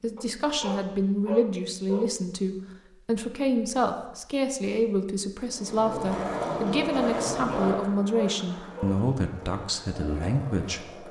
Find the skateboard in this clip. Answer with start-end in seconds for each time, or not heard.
5.5-11.0.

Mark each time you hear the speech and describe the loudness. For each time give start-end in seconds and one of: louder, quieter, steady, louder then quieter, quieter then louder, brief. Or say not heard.
0.0-11.0 steady.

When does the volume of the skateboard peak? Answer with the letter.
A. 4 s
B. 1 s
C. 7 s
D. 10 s
C.